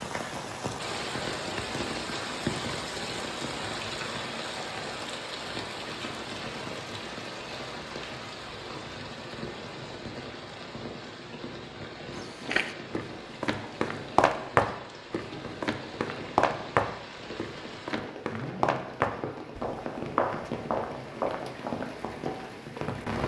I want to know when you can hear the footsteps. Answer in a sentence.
You can hear the footsteps from 12.1 to 22.8 s.